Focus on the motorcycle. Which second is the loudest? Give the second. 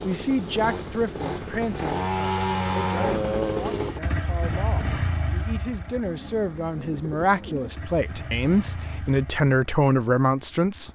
3 s.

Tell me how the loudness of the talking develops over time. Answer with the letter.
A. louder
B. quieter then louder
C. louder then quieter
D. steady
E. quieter
B.